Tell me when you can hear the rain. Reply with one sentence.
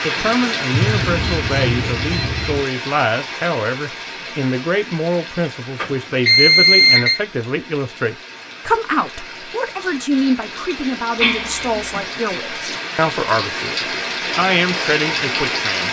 The rain can be heard from 0.0 to 15.8 s.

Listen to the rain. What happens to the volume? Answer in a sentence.
The loudness of the rain goes down, then up.